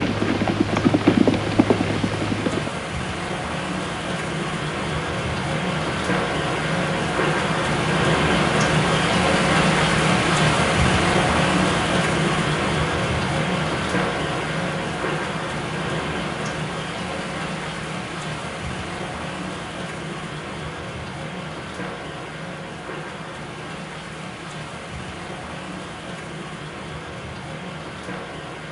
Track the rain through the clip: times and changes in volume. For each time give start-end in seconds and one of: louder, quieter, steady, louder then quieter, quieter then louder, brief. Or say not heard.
0.0-28.6 louder then quieter.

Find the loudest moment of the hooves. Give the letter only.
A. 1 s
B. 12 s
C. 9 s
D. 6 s
A.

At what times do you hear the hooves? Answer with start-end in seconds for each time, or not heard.
0.0-2.8.